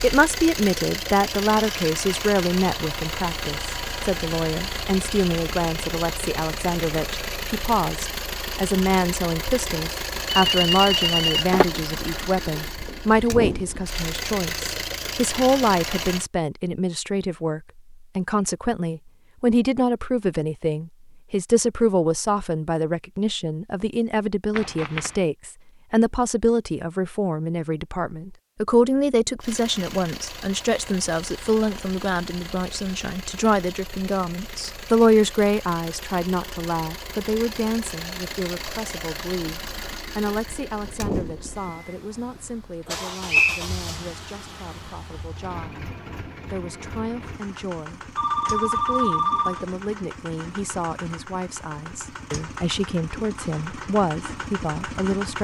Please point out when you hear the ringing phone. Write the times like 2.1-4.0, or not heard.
10.4-11.7, 24.6-25.1, 48.1-49.7.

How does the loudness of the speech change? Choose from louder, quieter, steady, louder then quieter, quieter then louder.
quieter.